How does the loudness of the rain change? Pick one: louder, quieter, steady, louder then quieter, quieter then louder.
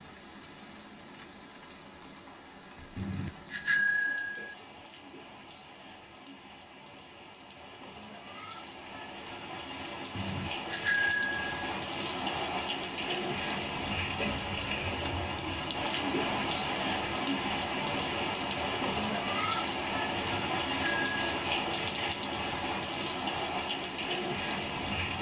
louder.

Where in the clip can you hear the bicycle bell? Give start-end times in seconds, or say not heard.
3.0-4.5, 10.2-11.8, 20.1-21.4.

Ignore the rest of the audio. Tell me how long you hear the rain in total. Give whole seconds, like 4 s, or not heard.
25 s.